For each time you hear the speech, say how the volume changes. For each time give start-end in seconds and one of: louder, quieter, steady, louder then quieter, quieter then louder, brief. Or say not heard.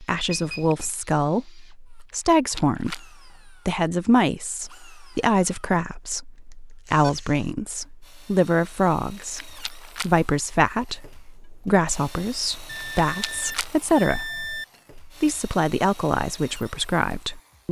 0.0-17.6 steady.